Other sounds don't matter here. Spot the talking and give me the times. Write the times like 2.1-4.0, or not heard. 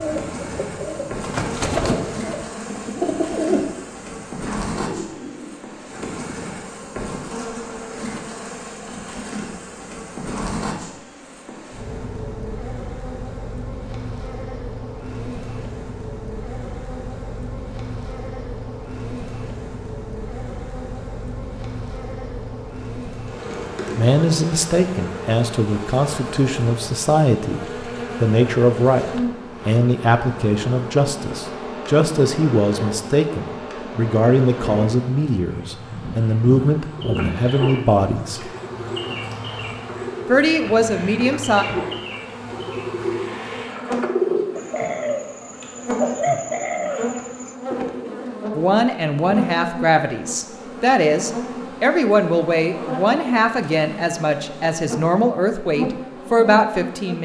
23.9-27.6, 28.2-38.5, 40.2-41.6, 48.5-57.1.